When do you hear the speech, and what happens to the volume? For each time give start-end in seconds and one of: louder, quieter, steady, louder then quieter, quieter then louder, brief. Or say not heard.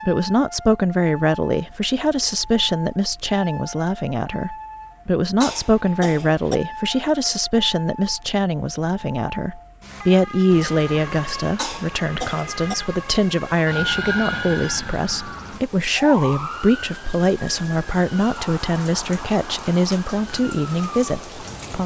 0.1-21.8 steady.